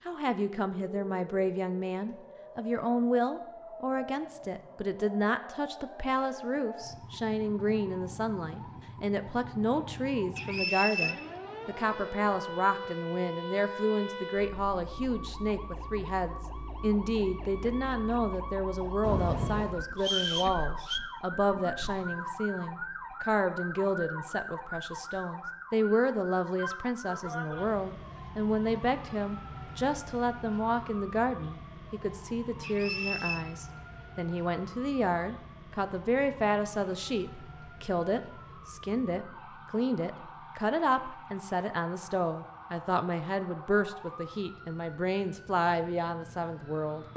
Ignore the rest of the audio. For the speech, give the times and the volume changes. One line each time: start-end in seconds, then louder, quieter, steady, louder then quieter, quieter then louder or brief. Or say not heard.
0.1-47.1 steady.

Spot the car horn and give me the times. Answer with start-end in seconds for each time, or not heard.
19.0-19.7.